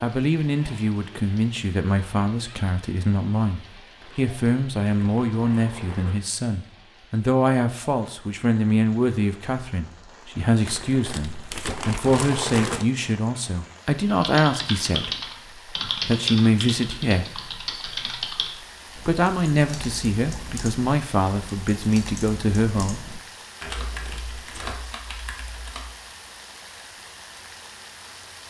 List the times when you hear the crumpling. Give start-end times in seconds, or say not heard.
4.0-6.2, 10.7-12.8, 23.6-24.9.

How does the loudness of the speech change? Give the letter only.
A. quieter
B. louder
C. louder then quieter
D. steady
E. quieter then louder
D.